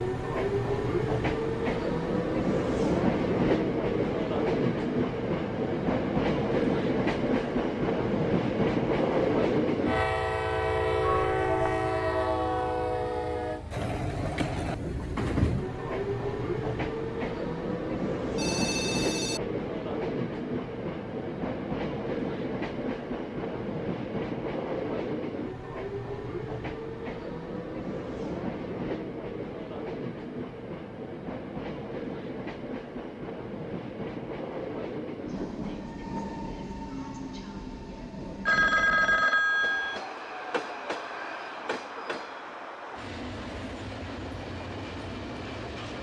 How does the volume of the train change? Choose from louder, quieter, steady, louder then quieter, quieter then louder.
quieter.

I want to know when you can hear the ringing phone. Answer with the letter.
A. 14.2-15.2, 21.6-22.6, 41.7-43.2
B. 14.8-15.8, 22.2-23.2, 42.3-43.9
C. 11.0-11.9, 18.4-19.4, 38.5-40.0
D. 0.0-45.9
C.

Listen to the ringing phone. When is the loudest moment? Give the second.
39 s.